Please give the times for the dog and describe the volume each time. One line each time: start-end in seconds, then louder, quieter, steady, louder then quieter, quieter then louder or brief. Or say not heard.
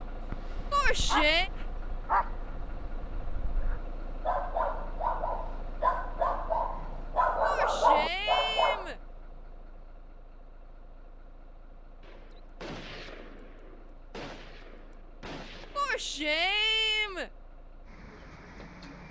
0.3-8.8 quieter then louder.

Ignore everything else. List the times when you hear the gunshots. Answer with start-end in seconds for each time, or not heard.
12.0-16.4.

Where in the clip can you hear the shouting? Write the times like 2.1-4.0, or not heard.
0.7-1.5, 7.5-9.0, 15.8-17.3.